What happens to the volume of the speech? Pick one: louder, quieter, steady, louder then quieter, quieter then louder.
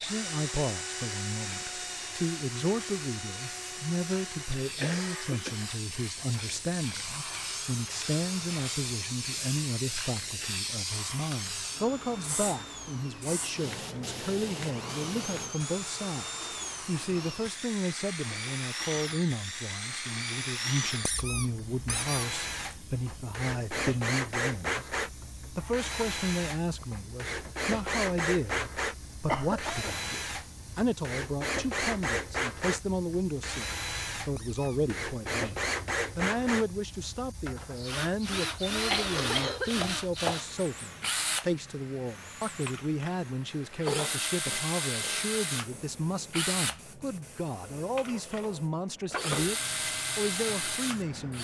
steady.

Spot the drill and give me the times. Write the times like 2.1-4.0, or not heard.
0.0-51.3.